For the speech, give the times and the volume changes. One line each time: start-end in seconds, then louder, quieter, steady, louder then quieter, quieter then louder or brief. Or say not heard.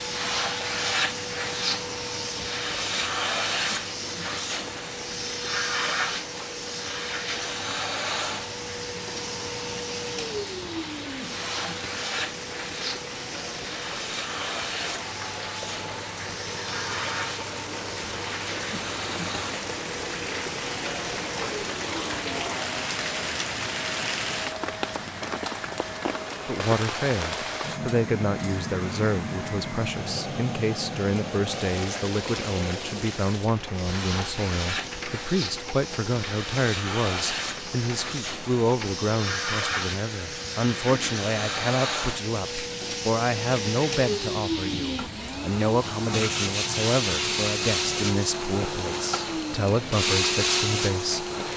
26.4-51.3 steady.